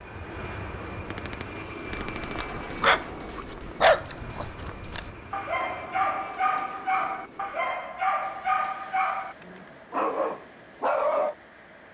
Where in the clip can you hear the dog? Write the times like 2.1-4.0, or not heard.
1.9-11.3.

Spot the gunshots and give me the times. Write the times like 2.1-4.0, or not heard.
1.0-2.5.